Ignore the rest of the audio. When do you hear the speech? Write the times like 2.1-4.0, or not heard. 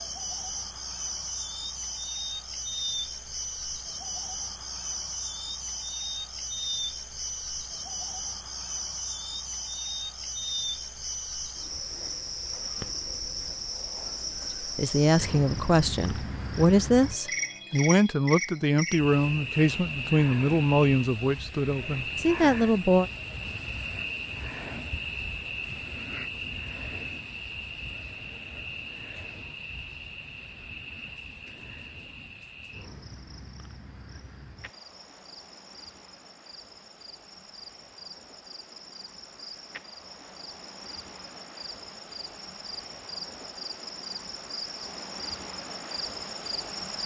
14.6-23.1.